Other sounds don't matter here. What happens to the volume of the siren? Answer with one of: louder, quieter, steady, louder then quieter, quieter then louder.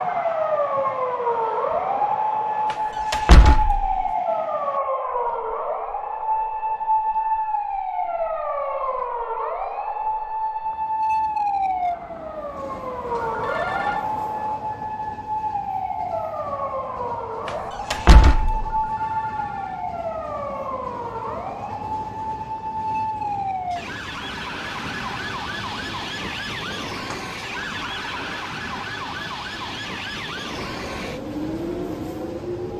quieter.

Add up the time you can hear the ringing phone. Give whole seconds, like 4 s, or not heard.
2 s.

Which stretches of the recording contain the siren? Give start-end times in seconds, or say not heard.
0.0-32.7.